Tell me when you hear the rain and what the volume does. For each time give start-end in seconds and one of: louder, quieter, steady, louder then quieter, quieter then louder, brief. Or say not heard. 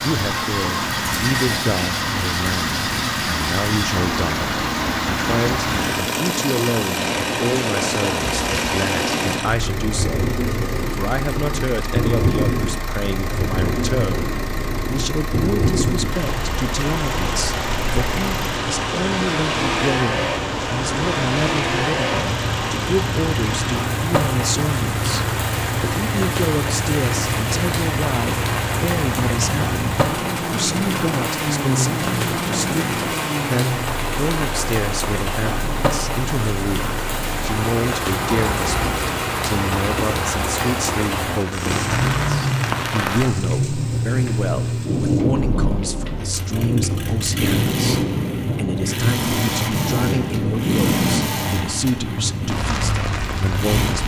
0.0-54.0 steady.